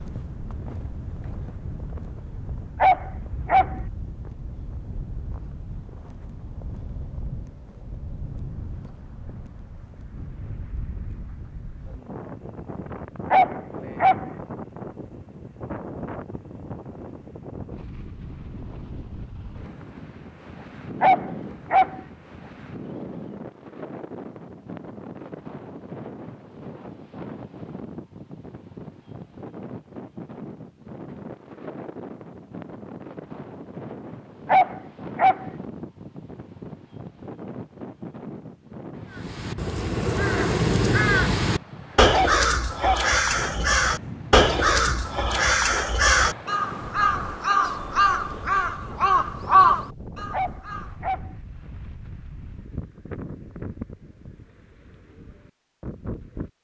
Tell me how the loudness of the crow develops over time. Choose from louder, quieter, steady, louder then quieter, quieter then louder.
steady.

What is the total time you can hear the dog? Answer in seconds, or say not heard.
6 s.